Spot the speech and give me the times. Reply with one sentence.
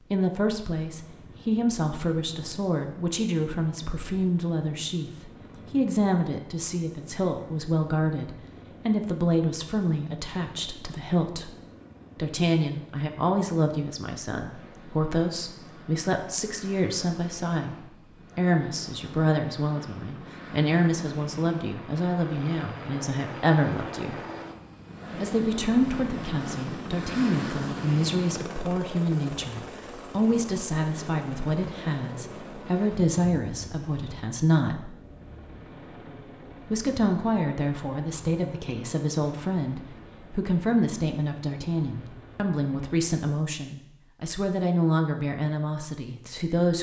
The speech can be heard from 0.1 to 11.5 s, from 12.2 to 24.2 s, from 25.1 to 34.9 s and from 36.6 to 46.7 s.